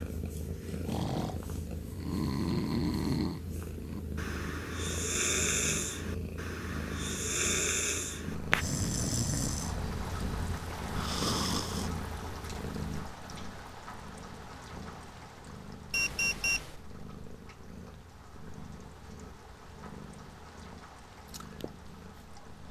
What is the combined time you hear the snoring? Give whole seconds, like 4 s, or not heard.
11 s.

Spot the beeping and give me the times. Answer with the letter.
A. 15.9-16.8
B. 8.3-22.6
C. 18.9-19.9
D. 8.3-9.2
A.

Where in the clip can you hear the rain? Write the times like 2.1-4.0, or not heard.
8.3-22.6.